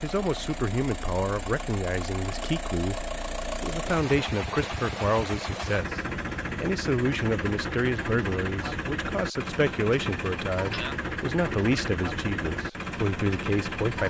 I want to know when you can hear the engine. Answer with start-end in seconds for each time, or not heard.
0.0-14.0.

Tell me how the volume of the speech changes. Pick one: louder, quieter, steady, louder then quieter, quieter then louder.
steady.